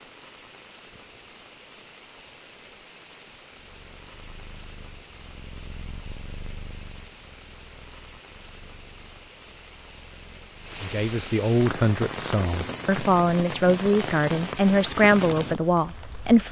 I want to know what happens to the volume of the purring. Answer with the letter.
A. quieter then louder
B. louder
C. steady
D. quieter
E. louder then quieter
E.